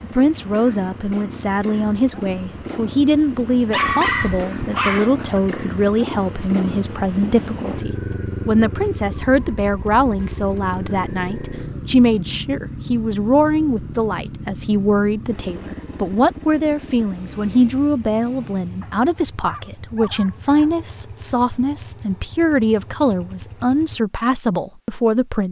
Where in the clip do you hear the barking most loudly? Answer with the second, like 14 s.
4 s.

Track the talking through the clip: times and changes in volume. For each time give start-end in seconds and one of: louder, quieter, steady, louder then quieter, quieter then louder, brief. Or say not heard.
0.0-25.4 steady.